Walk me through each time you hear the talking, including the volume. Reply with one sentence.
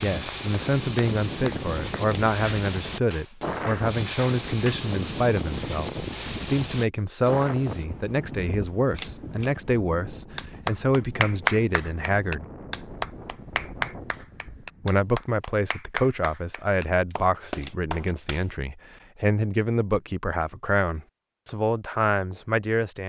The talking can be heard from 0.0 to 12.4 s, at a steady volume; and from 14.8 to 23.0 s, at a steady volume.